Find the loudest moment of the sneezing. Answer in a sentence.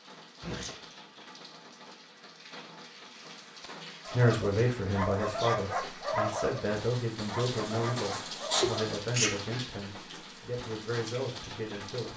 The loudest moment of the sneezing is at 9 seconds.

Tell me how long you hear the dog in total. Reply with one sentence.
The dog can be heard for 5 seconds in total.